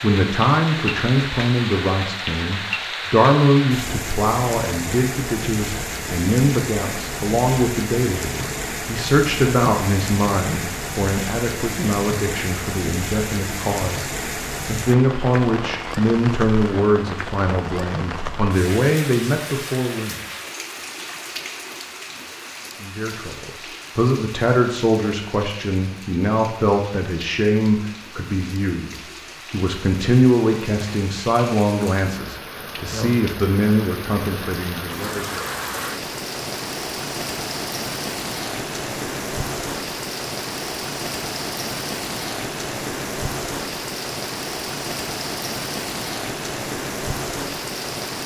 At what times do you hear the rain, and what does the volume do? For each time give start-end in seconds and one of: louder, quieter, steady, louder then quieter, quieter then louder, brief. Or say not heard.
0.0-48.2 quieter then louder.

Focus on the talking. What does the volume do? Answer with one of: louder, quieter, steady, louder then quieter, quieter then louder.
steady.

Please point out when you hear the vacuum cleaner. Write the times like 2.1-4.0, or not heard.
not heard.